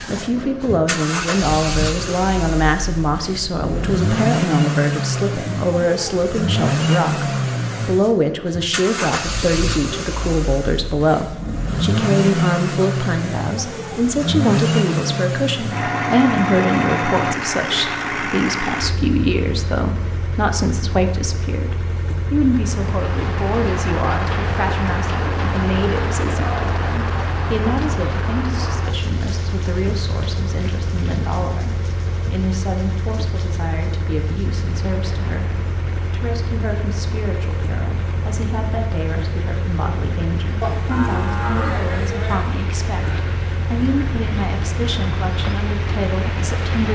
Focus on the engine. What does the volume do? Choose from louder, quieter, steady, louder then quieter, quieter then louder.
quieter.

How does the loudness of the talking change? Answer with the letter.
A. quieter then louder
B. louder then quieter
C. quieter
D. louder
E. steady
C.